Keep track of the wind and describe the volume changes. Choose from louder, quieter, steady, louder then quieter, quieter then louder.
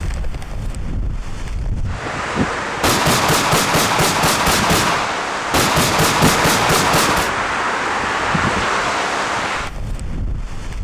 louder.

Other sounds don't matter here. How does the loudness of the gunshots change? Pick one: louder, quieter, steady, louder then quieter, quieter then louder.
steady.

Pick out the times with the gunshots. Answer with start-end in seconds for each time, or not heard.
2.8-7.3.